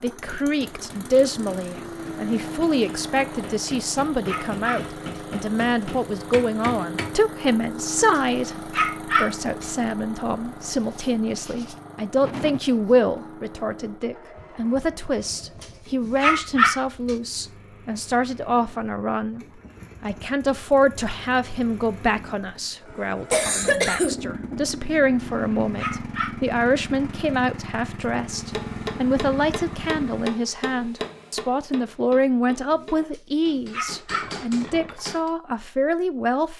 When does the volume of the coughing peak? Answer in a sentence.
The volume of the coughing peaks at 24 seconds.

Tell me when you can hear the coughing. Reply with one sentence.
You can hear the coughing from 10.8 to 13.2 s and from 23.3 to 24.1 s.